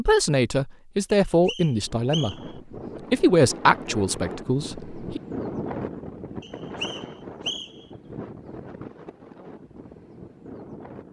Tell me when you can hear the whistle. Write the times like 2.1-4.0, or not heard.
1.2-2.5, 6.4-7.8.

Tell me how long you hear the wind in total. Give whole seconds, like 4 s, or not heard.
9 s.